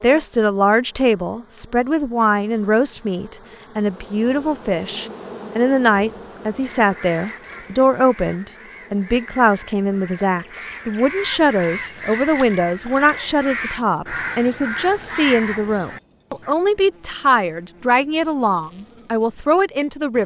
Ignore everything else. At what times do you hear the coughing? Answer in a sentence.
You can't hear the coughing here.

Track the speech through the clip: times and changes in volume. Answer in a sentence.
You can hear the speech from 0.0 to 20.2 s, at a steady volume.